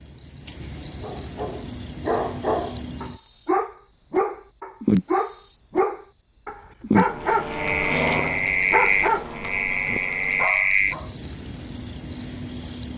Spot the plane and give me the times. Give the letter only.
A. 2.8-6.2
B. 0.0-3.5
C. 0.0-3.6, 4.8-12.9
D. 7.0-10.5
D.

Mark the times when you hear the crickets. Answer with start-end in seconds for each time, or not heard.
0.0-3.6, 4.8-12.9.